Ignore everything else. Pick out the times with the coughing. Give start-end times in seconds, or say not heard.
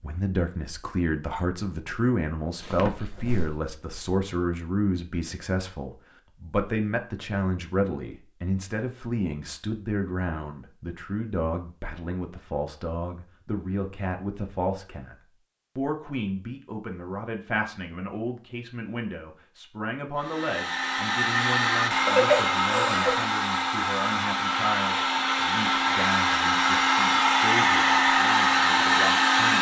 2.6-3.5, 22.1-23.2.